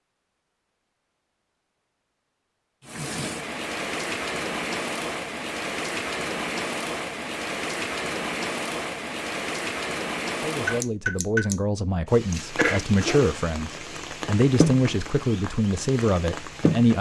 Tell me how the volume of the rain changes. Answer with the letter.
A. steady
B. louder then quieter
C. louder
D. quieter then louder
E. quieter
A.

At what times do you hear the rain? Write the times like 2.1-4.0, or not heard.
2.9-16.9.